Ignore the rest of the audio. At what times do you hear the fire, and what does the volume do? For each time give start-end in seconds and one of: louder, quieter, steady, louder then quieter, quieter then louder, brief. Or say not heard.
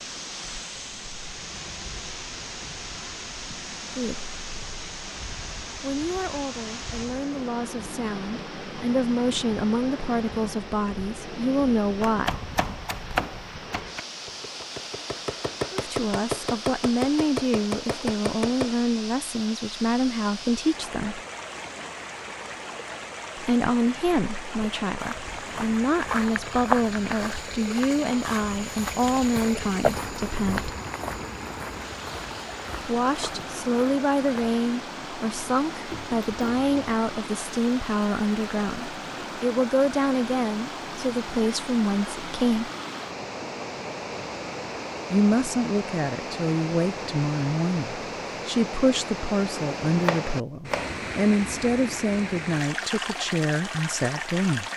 not heard.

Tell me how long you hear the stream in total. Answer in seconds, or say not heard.
55 s.